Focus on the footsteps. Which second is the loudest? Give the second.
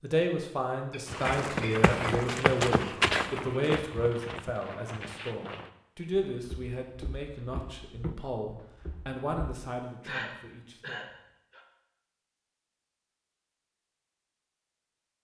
3 s.